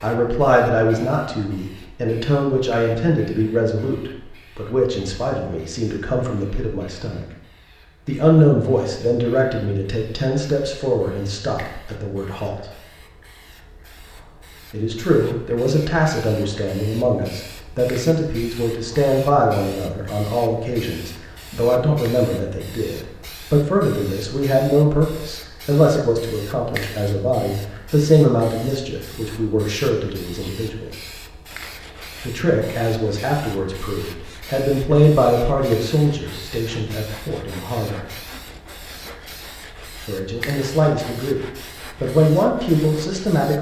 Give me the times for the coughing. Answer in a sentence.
You can't hear the coughing here.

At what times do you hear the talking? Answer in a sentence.
The talking can be heard from 0.0 to 7.2 s, from 8.1 to 12.7 s, from 14.7 to 31.1 s, from 32.2 to 38.1 s, from 40.0 to 41.4 s and from 42.0 to 43.5 s.